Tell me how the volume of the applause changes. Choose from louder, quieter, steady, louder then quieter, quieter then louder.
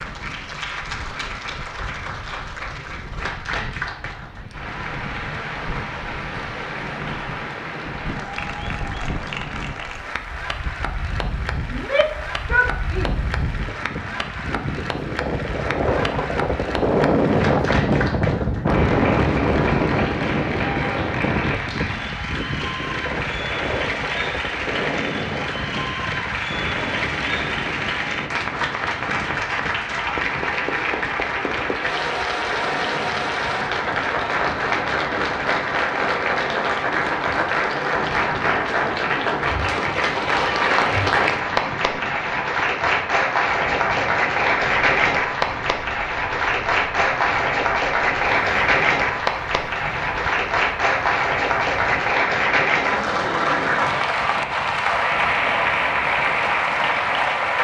louder.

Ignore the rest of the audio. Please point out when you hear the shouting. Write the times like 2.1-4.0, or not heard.
11.7-13.2.